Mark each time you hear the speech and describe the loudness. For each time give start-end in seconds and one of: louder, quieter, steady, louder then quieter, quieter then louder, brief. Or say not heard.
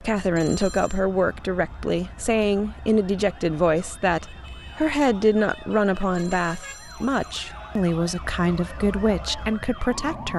0.0-10.3 steady.